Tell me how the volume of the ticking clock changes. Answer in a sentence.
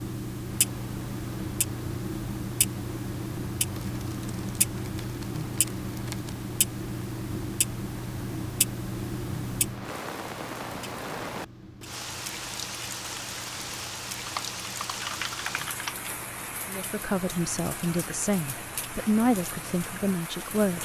The loudness of the ticking clock goes down.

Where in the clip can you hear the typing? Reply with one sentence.
The typing can be heard from 3.6 to 6.5 s and from 14.2 to 16.0 s.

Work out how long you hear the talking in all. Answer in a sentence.
The talking can be heard for 4 seconds in total.